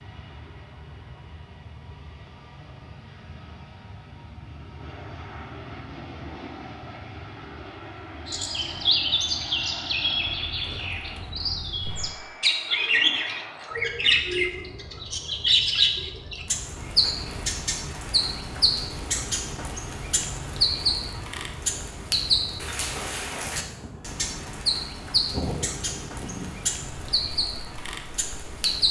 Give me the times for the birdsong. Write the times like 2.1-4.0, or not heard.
8.2-28.8.